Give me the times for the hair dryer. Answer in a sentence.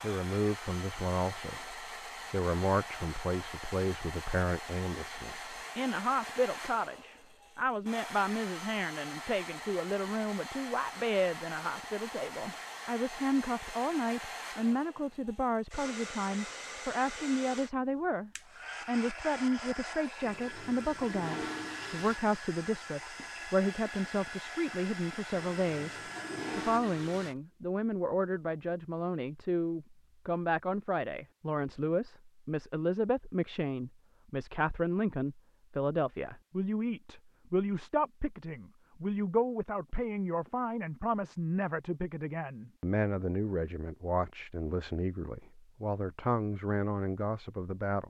You can hear the hair dryer from 0.0 to 26.8 s.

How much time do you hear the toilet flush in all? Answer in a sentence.
You can hear the toilet flush for 4 seconds altogether.